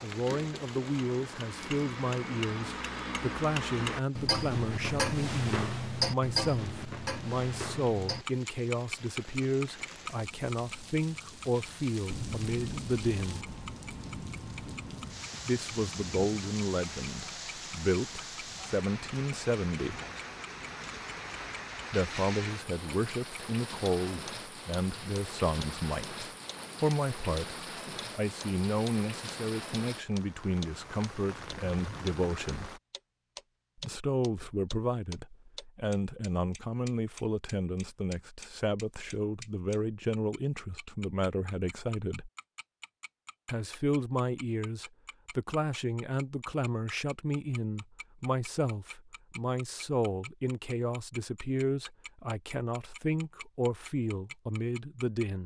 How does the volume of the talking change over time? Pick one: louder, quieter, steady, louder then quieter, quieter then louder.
steady.